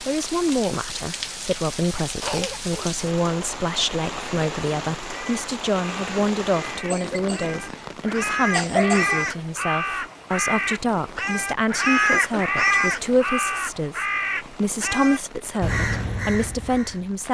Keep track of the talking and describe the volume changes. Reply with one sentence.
The loudness of the talking stays about the same.